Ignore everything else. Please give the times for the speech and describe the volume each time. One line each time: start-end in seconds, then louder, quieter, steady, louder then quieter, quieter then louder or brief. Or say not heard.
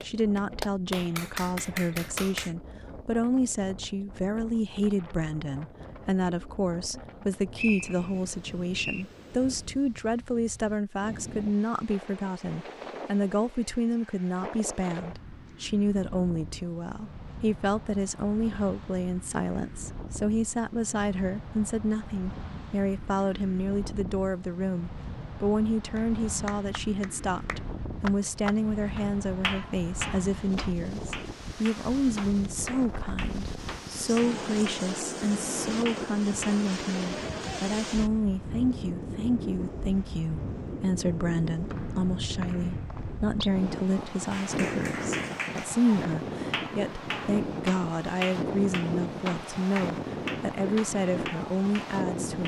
0.0-52.4 steady.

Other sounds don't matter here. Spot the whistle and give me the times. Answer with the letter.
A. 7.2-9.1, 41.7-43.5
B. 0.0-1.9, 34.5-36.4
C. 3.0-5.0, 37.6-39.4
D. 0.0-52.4
A.